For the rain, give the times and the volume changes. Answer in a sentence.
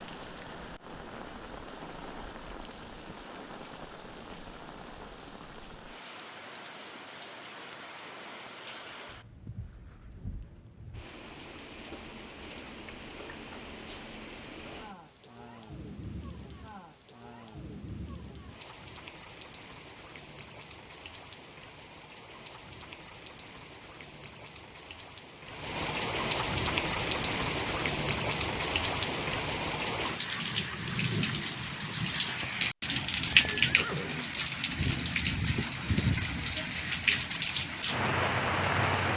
You can hear the rain from 0.0 to 39.1 s, getting louder.